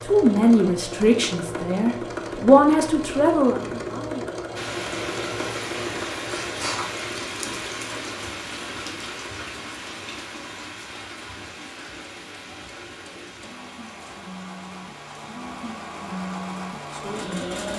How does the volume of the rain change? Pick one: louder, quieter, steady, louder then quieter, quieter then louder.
quieter.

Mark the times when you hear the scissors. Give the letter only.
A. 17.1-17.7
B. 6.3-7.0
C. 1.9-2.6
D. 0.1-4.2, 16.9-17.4
B.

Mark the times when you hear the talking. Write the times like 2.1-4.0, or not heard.
0.1-4.2, 16.9-17.4.